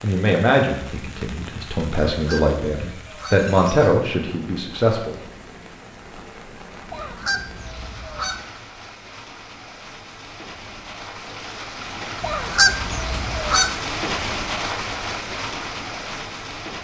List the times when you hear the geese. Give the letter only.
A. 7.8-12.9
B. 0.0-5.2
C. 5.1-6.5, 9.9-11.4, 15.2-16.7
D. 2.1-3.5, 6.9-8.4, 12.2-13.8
D.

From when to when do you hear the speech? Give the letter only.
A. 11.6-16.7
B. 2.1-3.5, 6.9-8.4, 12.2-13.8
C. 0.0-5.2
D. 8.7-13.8
C.